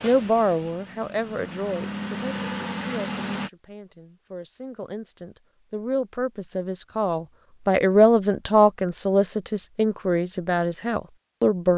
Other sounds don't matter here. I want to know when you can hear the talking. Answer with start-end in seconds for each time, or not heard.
0.0-11.7.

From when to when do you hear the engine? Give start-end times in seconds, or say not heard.
0.0-3.5.